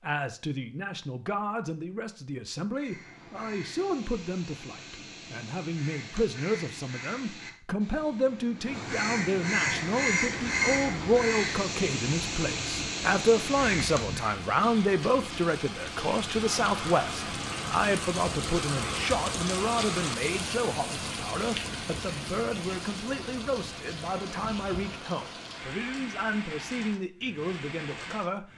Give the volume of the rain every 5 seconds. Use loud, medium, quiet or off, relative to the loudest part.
off, off, medium, loud, loud, medium.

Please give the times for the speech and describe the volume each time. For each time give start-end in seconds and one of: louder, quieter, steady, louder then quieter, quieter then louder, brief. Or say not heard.
0.0-28.4 louder then quieter.